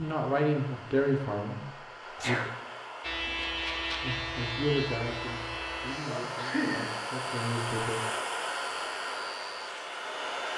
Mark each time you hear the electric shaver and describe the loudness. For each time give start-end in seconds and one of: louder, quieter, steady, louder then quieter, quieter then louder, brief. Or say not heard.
3.0-10.5 quieter.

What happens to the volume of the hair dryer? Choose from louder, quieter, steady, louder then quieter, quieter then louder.
louder.